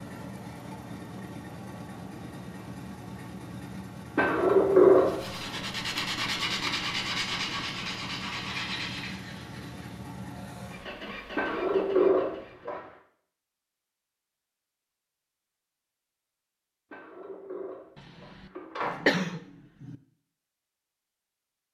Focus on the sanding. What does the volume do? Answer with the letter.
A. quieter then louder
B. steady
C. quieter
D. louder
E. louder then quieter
C.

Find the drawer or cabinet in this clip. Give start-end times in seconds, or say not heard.
4.2-5.2, 11.3-12.8, 16.9-19.0.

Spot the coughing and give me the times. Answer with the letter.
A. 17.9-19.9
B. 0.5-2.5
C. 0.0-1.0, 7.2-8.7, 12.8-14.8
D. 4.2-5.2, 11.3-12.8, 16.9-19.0
A.